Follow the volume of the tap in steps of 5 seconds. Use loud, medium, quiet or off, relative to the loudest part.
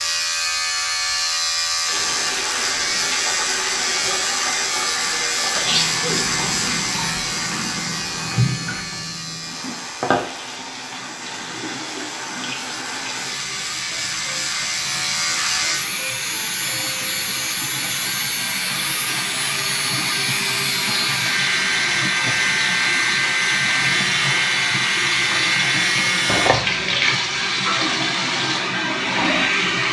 medium, medium, medium, medium, loud, loud.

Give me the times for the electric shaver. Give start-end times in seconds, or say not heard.
0.0-26.5.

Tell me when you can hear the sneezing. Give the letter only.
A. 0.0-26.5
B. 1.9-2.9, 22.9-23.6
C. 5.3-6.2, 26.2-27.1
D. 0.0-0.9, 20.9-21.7
C.